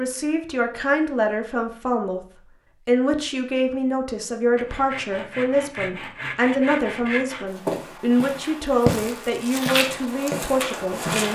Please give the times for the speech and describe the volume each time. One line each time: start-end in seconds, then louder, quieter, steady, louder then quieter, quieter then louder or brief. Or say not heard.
0.0-2.2 brief
2.9-11.3 steady.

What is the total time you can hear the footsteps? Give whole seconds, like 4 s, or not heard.
4 s.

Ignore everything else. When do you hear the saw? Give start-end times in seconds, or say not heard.
4.5-7.5.